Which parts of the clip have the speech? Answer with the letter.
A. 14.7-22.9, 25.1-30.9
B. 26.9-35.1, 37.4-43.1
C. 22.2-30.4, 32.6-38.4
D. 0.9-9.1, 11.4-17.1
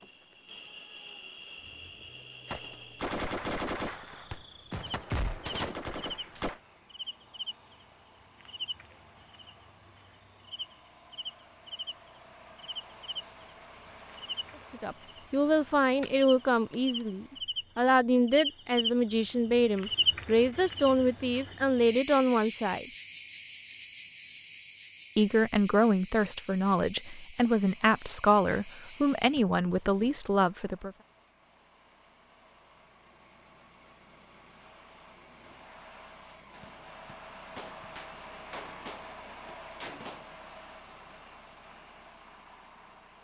A.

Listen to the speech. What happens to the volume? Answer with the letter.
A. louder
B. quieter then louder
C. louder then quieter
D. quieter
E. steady
E.